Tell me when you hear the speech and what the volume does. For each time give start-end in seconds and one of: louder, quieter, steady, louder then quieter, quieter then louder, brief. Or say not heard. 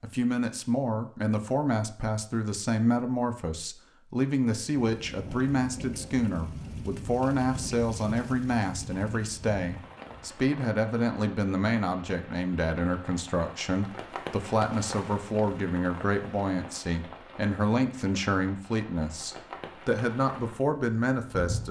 0.0-21.6 steady.